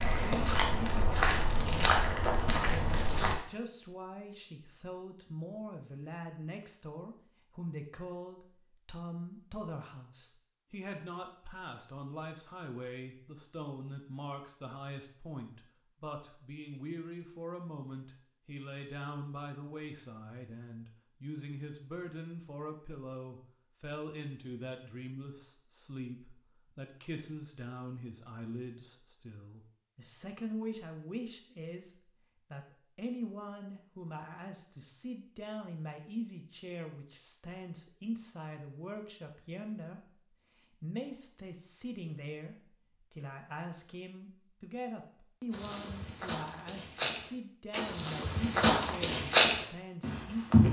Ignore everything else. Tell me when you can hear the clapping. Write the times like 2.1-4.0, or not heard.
not heard.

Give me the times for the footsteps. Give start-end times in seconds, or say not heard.
0.0-3.4, 45.5-50.6.